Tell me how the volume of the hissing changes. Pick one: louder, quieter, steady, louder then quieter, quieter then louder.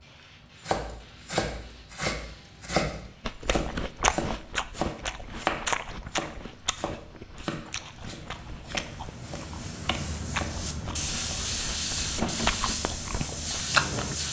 louder.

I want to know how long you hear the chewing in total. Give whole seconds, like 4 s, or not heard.
11 s.